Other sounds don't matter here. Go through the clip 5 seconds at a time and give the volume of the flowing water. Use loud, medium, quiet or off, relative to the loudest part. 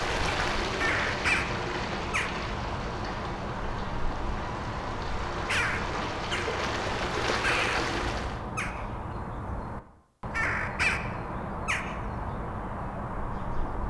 loud, loud, off.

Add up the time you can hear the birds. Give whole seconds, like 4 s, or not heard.
14 s.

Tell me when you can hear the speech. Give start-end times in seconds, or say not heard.
not heard.